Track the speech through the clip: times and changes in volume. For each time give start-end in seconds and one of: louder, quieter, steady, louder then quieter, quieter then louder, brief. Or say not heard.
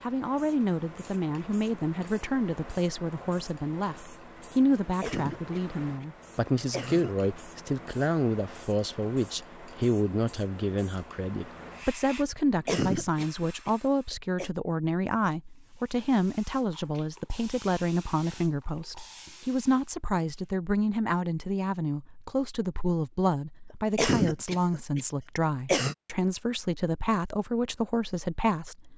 0.0-28.9 steady.